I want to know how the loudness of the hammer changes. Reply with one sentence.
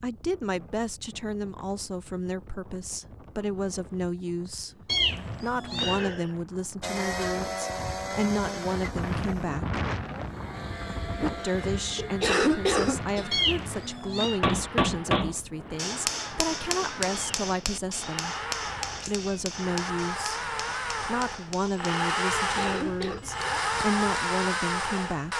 The volume of the hammer goes down.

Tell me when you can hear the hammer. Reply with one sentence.
The hammer can be heard from 14.3 to 24.0 s.